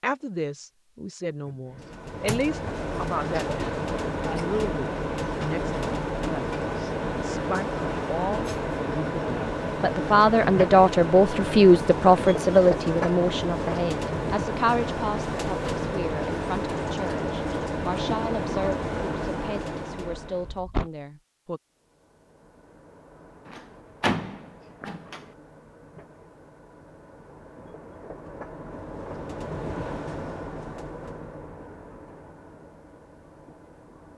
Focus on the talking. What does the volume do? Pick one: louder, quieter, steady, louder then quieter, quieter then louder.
louder then quieter.